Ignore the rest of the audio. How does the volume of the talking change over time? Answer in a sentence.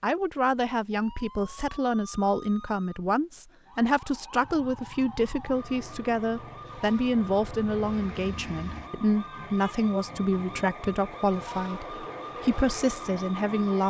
The loudness of the talking stays about the same.